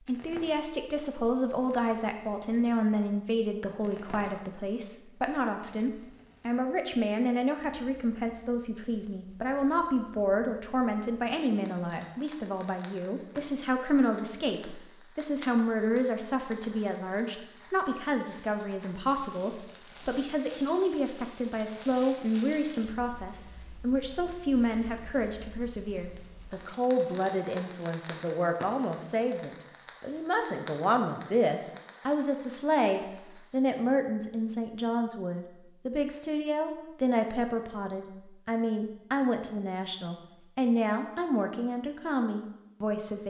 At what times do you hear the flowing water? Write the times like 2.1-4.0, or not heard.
not heard.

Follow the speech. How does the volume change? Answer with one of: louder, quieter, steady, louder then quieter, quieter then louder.
steady.